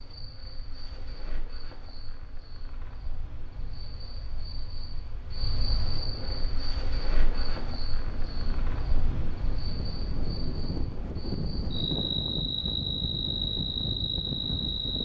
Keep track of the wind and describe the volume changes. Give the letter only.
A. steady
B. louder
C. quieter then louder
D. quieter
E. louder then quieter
B.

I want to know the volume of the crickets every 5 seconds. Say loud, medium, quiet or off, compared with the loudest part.
quiet, medium, loud.